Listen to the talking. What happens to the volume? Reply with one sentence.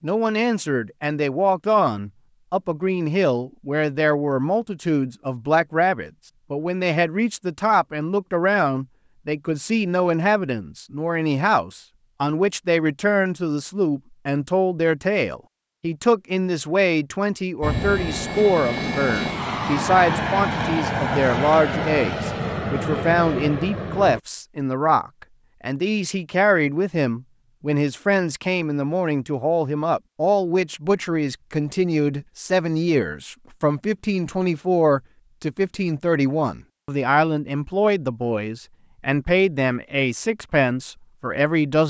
The loudness of the talking stays about the same.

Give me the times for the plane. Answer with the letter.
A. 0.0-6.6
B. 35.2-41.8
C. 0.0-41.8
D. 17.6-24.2
D.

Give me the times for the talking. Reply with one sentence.
You can hear the talking from 0.0 to 41.8 s.